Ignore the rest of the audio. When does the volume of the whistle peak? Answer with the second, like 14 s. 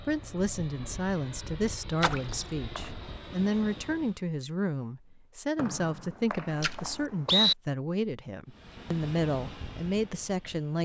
7 s.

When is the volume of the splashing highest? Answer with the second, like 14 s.
2 s.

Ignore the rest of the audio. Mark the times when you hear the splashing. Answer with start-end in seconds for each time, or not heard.
2.0-2.5, 6.6-7.0.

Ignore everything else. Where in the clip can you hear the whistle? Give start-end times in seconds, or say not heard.
2.2-2.9, 5.5-7.5.